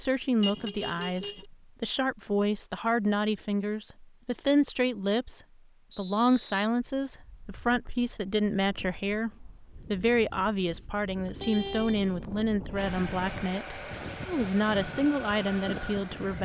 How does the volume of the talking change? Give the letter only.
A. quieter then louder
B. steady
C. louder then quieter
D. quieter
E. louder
B.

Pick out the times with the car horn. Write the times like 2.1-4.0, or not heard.
0.4-1.4, 11.2-12.8.